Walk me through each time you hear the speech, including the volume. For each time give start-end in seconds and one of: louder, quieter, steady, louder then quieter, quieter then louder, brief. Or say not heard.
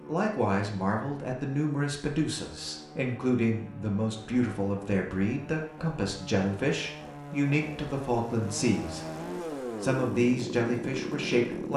0.1-9.1 steady
9.8-11.7 brief.